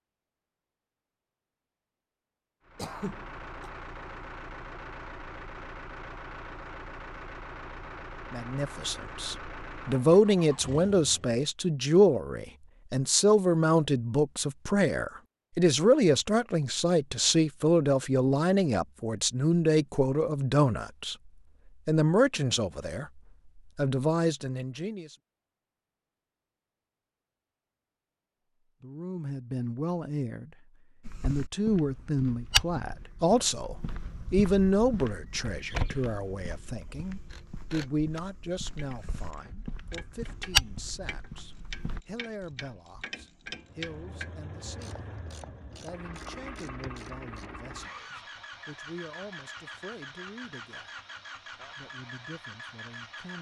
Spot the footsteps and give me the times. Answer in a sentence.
You can hear the footsteps from 31.1 to 42.0 s.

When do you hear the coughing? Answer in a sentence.
You can hear the coughing from 2.8 to 3.7 s.